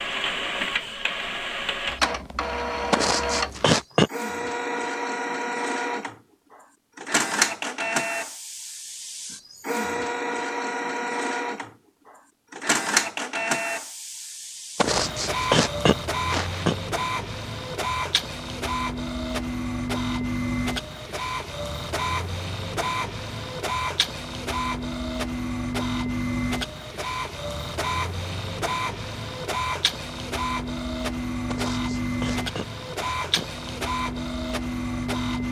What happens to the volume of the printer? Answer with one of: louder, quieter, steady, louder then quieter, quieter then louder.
steady.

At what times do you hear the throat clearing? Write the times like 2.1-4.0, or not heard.
2.9-4.1, 14.8-16.8, 31.5-33.5.